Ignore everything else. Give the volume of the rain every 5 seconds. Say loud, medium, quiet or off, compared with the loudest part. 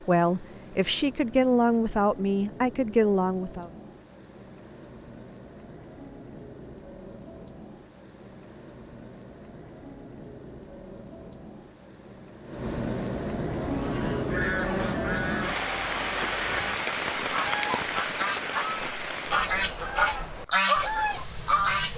quiet, quiet, loud, loud, medium.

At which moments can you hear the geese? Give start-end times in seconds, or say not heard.
13.6-21.9.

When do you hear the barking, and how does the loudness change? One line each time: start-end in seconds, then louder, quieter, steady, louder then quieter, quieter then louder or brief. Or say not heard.
not heard.